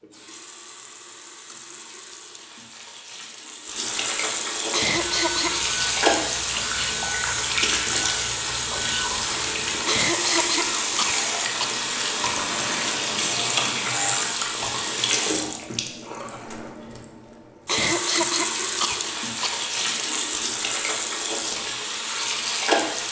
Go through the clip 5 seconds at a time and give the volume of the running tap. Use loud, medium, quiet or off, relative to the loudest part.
medium, loud, loud, loud, loud.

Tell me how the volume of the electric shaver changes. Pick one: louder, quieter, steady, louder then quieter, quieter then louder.
steady.